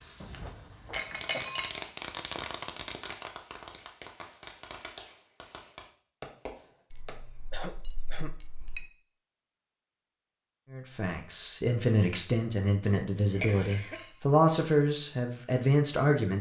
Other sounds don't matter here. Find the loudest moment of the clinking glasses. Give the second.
1 s.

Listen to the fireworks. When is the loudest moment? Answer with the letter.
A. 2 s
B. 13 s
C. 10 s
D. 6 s
A.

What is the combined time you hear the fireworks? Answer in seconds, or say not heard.
7 s.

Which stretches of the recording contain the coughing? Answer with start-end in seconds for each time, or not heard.
0.2-1.4, 7.5-8.3, 13.4-14.1.